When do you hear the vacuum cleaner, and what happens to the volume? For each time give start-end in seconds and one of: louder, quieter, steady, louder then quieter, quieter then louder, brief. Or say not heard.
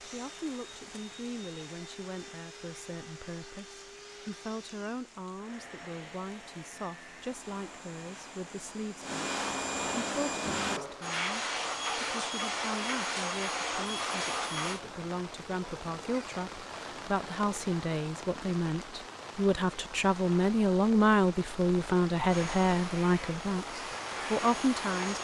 0.0-14.8 louder
22.2-25.1 brief.